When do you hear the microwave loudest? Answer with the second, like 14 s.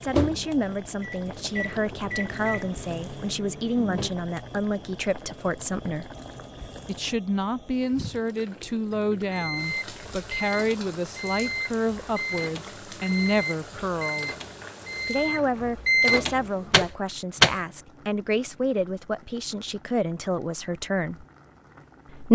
17 s.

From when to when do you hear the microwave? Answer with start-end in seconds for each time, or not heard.
0.0-4.1, 9.2-17.6.